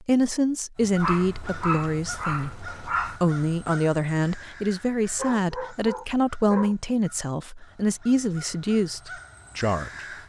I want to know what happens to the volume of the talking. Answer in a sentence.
The loudness of the talking stays about the same.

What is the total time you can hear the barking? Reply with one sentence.
You can hear the barking for 4 seconds altogether.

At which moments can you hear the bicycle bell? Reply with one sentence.
The bicycle bell can't be heard in this clip.